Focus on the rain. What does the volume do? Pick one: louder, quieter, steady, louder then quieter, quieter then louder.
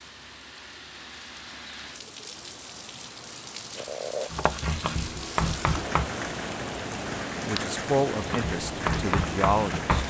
louder.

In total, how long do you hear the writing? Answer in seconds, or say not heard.
4 s.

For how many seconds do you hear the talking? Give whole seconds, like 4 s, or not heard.
3 s.